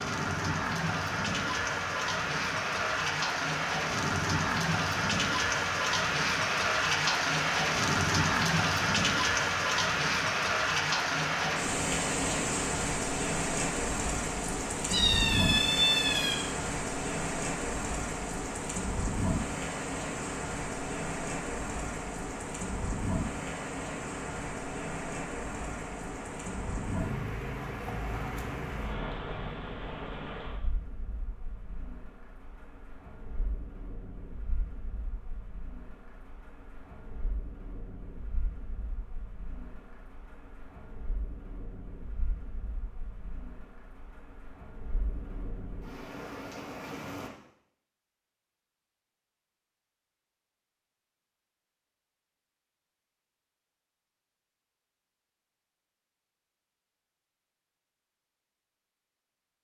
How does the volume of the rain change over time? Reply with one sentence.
The loudness of the rain goes down.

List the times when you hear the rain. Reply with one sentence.
You can hear the rain from 0.0 to 47.3 s.